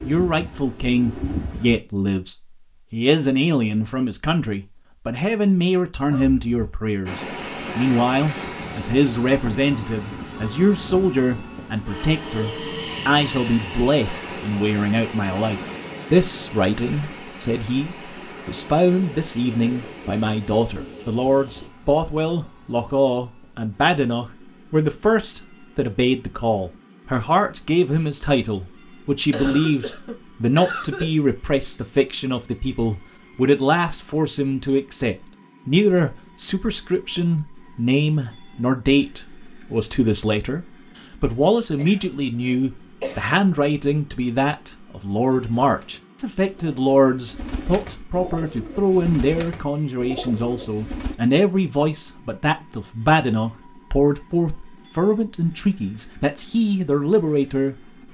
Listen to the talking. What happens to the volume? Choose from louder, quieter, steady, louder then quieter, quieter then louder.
steady.